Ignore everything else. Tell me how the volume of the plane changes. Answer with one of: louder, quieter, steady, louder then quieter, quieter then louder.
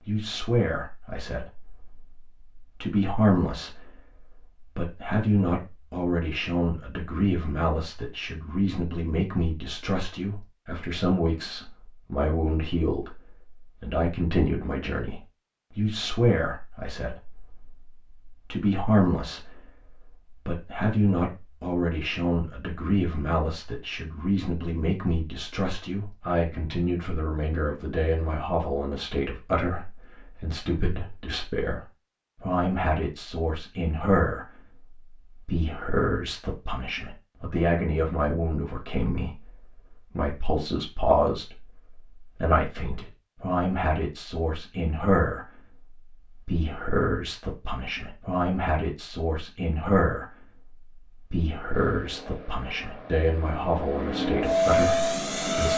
louder.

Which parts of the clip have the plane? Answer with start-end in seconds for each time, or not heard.
51.7-55.7.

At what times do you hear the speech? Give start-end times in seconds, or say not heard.
0.1-31.8, 32.4-55.7.